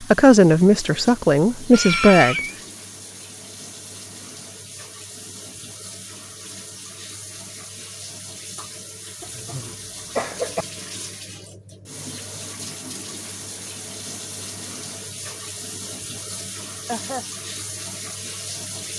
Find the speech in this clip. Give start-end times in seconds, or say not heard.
0.0-2.4.